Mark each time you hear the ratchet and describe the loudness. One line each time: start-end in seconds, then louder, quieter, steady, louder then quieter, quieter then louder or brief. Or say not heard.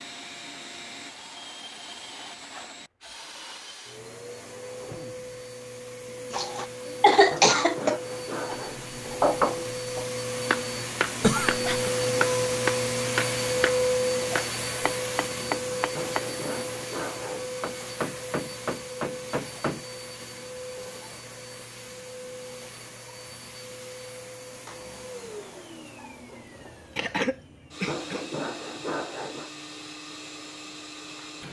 not heard.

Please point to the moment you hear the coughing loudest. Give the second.
7 s.